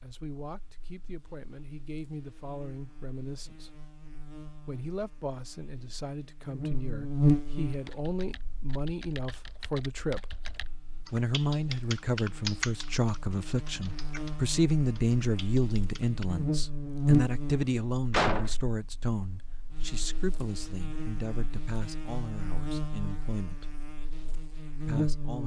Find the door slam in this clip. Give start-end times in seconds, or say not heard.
18.1-18.6.